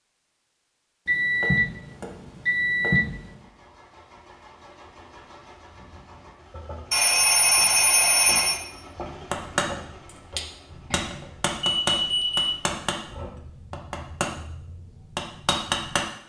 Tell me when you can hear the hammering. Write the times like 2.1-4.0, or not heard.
9.3-16.1.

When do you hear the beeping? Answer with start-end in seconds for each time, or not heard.
1.1-3.2, 6.9-8.6, 10.9-12.7.